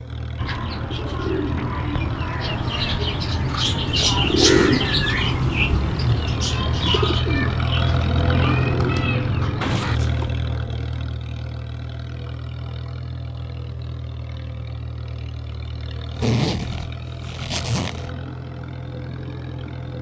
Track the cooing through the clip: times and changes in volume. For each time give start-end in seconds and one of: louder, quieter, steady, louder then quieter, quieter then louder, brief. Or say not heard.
0.3-10.0 louder then quieter.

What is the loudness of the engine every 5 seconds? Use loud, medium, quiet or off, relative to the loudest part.
medium, loud, medium, medium.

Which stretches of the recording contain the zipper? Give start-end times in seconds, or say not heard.
3.9-4.8, 9.6-10.3, 16.1-18.1.